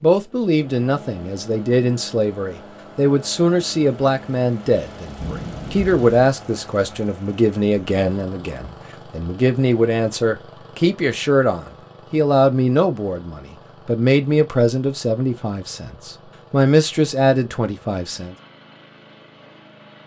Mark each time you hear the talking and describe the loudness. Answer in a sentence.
The talking can be heard from 0.0 to 18.4 s, at a steady volume.